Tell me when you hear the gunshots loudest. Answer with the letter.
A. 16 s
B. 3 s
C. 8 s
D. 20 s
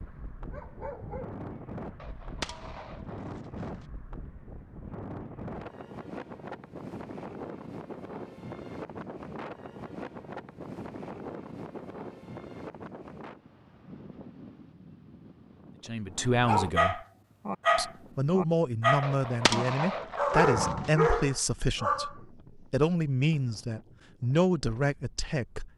D.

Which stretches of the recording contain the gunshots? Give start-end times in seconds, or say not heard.
1.9-3.9, 19.0-20.9.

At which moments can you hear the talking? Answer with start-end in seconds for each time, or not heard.
15.8-17.0, 17.8-25.7.